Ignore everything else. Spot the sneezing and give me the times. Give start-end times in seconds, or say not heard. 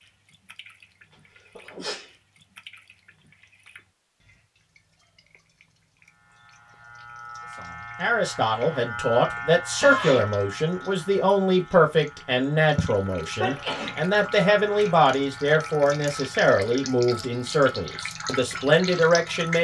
1.6-2.1, 9.3-10.2, 13.4-14.4.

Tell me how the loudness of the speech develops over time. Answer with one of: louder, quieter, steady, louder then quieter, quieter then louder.
steady.